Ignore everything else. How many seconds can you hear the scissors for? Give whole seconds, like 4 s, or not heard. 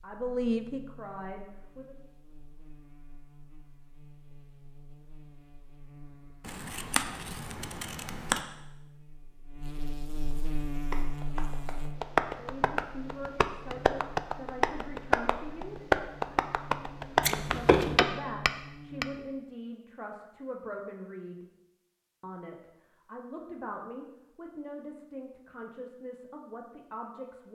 3 s.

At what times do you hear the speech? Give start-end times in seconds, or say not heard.
0.0-1.9, 12.3-15.8, 17.4-21.4, 22.2-27.4.